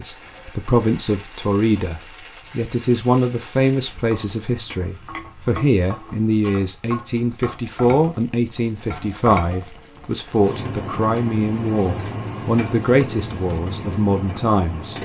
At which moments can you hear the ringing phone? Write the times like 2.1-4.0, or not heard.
not heard.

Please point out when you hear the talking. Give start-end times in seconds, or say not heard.
0.0-14.9.